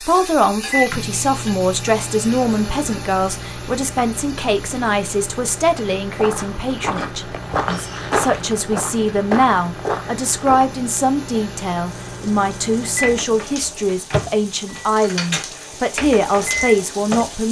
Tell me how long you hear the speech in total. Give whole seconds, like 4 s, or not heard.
17 s.